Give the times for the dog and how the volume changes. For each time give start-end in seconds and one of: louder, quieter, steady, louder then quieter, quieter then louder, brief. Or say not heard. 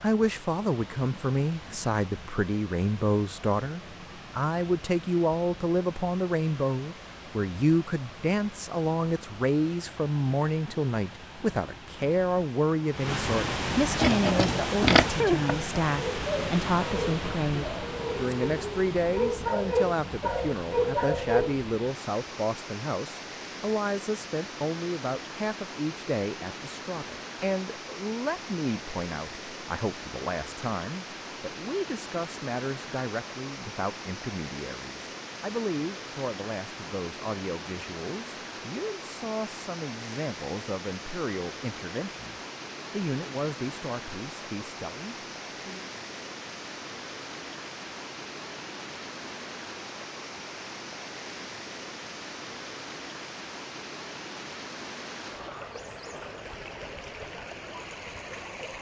13.9-21.5 quieter then louder.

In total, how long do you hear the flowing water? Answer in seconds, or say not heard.
59 s.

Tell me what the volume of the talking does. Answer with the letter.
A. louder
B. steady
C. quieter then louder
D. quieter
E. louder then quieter
D.